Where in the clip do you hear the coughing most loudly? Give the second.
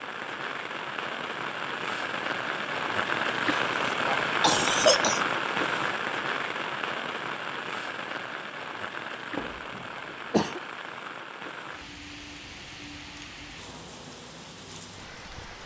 5 s.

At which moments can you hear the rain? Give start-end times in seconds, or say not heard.
0.0-15.6.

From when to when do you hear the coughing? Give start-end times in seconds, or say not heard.
3.5-5.2, 9.3-10.6.